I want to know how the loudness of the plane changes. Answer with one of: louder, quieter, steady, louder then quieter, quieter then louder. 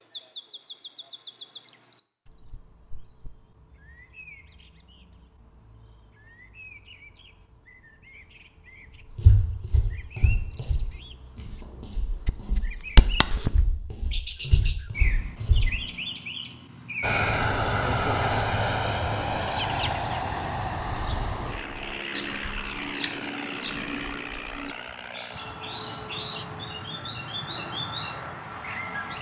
quieter.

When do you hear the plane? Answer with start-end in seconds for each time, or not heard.
17.0-29.1.